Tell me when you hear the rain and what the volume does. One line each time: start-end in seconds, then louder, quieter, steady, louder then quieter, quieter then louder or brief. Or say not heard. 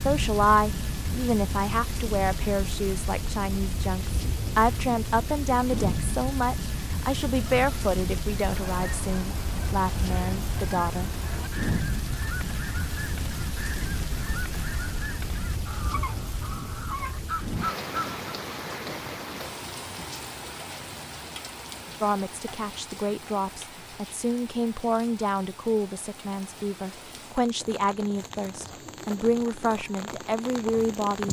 0.0-31.2 quieter.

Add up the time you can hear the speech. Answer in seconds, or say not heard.
20 s.